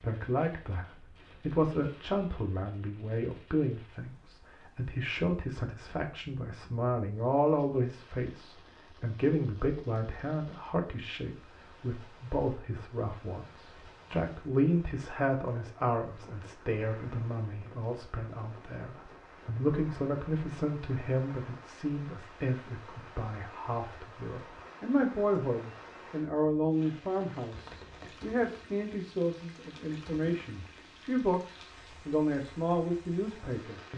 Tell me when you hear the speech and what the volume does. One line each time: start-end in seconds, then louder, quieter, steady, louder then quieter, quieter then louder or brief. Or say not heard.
0.0-33.9 steady.